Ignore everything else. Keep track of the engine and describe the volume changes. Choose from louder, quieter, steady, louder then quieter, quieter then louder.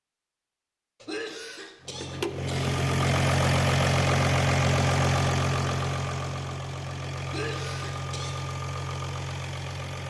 quieter.